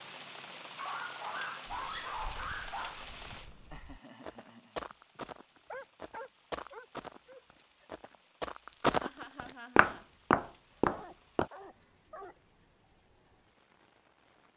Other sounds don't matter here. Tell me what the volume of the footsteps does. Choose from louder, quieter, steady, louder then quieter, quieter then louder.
louder.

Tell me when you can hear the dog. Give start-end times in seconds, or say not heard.
0.8-3.0, 5.7-7.8, 10.8-12.4.